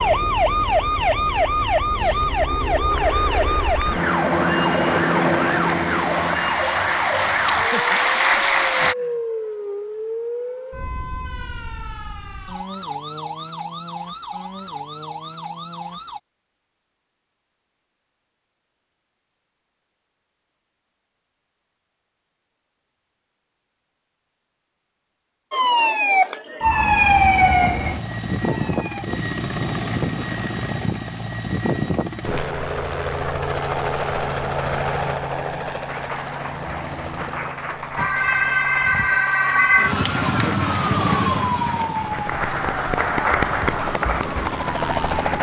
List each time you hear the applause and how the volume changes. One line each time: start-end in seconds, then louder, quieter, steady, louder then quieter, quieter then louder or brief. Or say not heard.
2.9-8.9 louder
35.9-45.3 louder.